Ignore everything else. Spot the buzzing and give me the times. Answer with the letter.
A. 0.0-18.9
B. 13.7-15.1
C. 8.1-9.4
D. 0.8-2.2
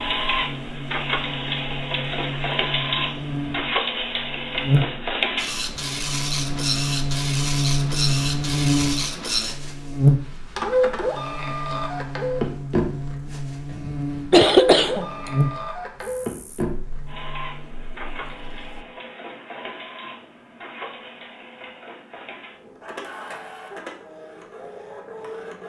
A.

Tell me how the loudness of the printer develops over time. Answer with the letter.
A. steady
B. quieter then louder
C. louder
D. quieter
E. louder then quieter
D.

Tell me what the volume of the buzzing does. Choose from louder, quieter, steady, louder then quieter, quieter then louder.
louder then quieter.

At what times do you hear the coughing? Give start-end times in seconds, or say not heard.
13.7-15.1.